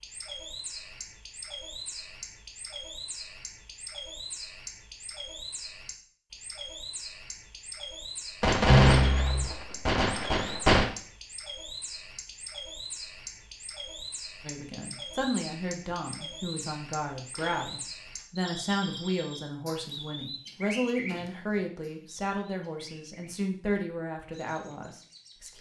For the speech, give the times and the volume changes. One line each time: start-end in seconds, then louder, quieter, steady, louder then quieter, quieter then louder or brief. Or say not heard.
14.4-25.5 steady.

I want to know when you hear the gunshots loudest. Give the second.
9 s.